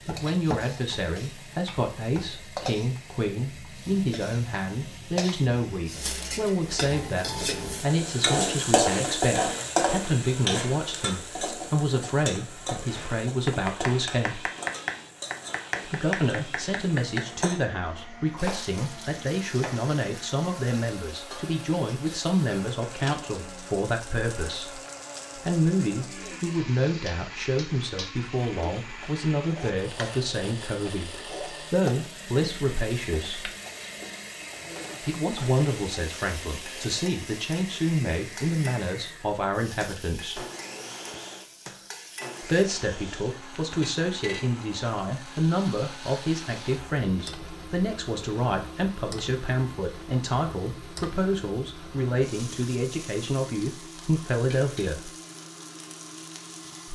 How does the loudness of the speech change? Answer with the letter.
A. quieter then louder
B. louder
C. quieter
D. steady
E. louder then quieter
D.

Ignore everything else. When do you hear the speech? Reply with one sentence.
You can hear the speech from 0.1 to 14.4 s, from 15.8 to 33.5 s, from 35.0 to 40.5 s and from 42.4 to 55.1 s.